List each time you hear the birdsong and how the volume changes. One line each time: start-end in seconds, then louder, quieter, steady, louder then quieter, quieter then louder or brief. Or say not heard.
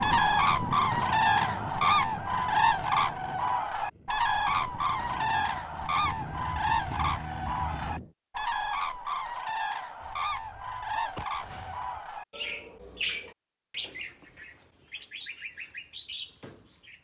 0.0-16.9 quieter.